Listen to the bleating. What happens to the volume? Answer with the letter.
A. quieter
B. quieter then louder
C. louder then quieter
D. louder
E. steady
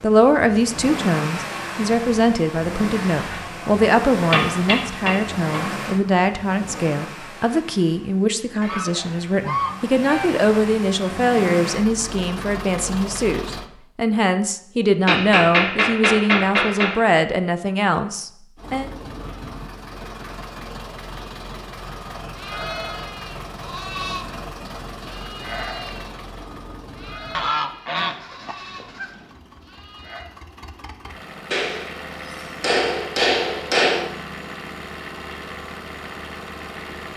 A.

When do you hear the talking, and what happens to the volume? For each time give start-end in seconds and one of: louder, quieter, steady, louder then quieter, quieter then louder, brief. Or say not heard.
0.0-18.9 steady.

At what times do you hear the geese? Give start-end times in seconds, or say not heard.
8.6-10.4, 27.4-29.1.